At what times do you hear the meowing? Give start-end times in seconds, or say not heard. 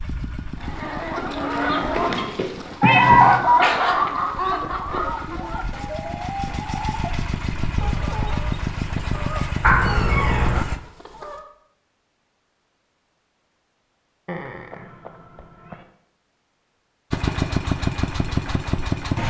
2.8-3.5, 9.6-10.7, 14.2-15.8.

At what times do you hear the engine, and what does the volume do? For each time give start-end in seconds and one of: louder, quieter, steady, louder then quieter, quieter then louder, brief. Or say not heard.
0.0-10.8 quieter then louder
17.1-19.2 brief.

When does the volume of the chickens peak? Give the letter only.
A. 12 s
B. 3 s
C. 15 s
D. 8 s
B.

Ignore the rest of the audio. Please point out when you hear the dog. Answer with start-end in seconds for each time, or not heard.
not heard.